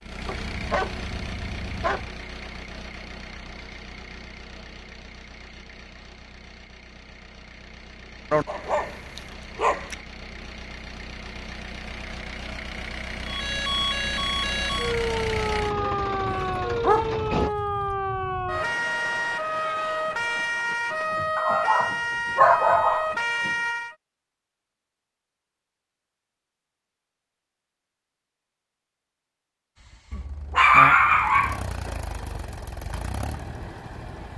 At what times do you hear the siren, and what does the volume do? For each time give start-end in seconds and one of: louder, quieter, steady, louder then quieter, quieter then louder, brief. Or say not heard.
13.2-23.9 steady.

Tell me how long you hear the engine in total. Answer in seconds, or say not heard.
22 s.